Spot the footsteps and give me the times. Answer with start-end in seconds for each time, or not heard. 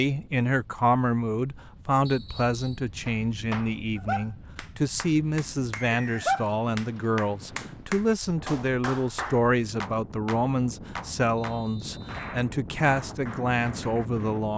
not heard.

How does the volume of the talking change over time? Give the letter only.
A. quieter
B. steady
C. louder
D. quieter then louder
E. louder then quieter
B.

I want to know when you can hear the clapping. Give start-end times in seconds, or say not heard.
3.0-14.4.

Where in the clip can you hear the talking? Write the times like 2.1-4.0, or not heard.
0.0-14.5.